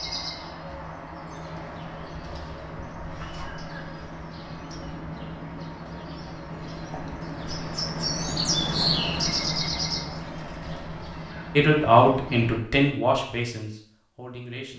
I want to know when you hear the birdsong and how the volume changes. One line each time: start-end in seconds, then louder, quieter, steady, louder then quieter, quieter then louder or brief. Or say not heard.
0.0-12.6 louder then quieter.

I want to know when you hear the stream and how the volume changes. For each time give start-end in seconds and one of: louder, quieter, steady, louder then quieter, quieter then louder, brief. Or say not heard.
not heard.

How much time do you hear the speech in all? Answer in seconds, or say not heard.
3 s.